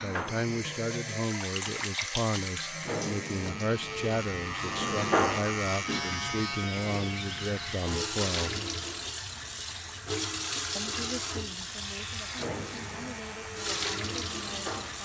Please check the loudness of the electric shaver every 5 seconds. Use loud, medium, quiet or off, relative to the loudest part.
medium, loud, medium.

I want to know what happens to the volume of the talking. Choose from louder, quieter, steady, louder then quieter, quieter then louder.
quieter.